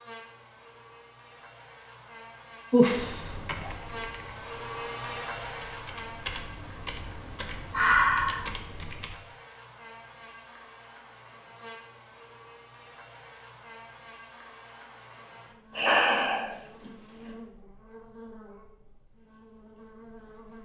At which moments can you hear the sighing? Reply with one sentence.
The sighing can be heard from 2.7 to 3.7 s, from 7.7 to 8.5 s and from 15.8 to 16.9 s.